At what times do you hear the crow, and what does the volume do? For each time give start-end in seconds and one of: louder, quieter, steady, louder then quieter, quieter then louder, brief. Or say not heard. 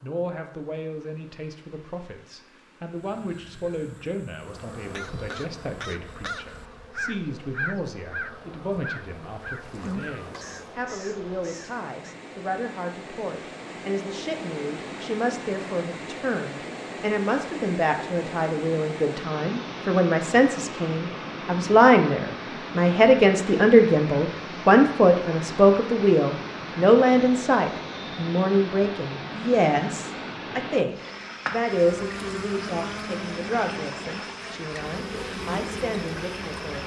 3.0-12.2 louder then quieter.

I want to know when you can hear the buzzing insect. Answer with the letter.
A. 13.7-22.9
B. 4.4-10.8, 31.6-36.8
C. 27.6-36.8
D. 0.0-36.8
B.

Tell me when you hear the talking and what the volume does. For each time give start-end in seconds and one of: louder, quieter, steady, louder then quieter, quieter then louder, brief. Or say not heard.
0.0-36.8 louder then quieter.